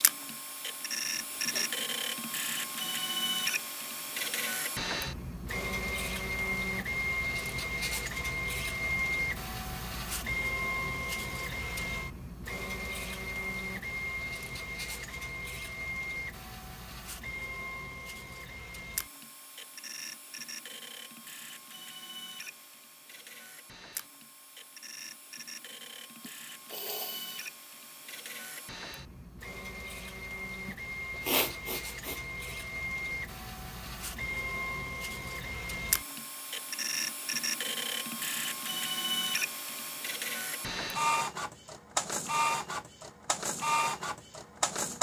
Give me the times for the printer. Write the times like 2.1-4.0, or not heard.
0.0-44.9.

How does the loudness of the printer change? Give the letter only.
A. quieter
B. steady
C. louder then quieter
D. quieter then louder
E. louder
D.